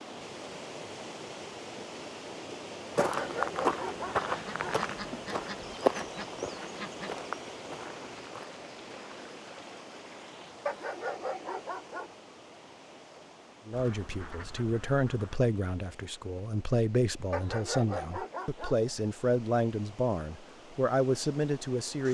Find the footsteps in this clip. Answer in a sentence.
The footsteps can be heard from 3.0 to 9.2 s.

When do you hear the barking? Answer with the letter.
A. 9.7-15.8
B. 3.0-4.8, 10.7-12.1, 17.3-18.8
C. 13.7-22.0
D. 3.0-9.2
B.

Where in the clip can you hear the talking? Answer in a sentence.
The talking can be heard from 13.7 to 22.0 s.